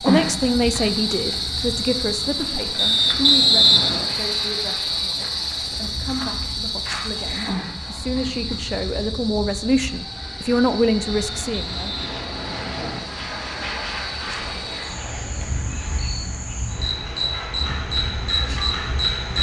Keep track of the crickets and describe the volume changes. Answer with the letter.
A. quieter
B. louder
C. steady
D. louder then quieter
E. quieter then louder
E.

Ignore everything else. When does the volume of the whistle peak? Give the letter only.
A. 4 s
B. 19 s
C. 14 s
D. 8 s
A.